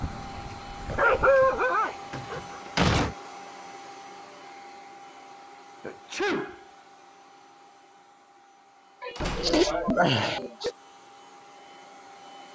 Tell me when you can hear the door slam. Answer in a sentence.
You can hear the door slam from 2.1 to 3.1 s and from 9.2 to 10.0 s.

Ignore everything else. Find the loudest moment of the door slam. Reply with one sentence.
The volume of the door slam peaks at 3 seconds.